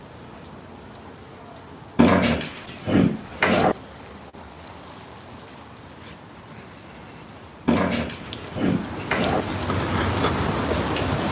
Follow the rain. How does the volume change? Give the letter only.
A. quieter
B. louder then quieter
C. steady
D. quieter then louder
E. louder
E.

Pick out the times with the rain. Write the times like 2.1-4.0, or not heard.
0.0-11.2.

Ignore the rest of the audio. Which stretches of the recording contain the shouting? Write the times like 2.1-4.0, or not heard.
not heard.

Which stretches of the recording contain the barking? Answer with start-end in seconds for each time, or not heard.
1.9-3.8, 7.7-9.4.